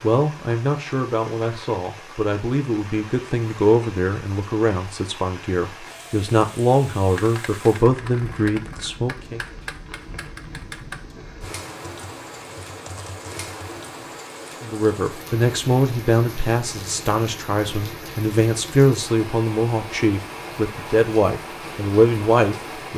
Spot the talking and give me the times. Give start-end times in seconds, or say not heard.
0.0-9.4, 14.6-22.9.